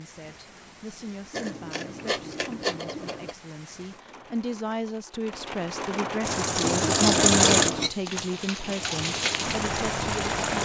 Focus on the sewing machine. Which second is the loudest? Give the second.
7 s.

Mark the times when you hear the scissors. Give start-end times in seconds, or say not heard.
1.3-3.4, 6.6-7.9.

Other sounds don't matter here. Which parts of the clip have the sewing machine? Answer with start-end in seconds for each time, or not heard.
6.2-10.6.